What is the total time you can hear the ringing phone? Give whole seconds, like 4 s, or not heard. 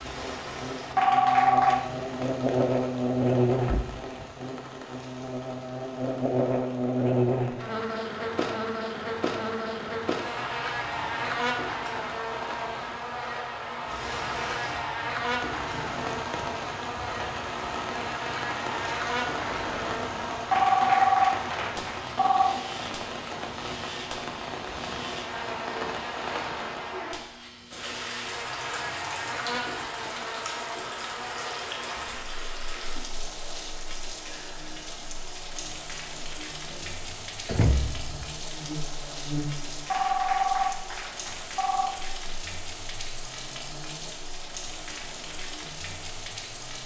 5 s.